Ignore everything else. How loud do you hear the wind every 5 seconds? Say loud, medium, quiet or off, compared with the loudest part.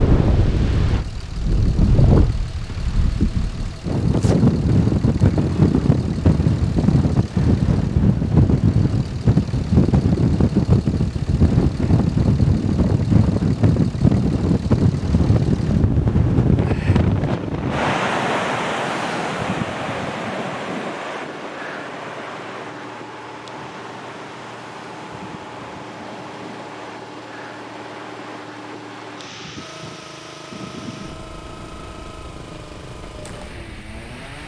loud, loud, loud, loud, quiet, quiet, quiet.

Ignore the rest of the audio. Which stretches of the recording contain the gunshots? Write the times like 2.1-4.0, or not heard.
not heard.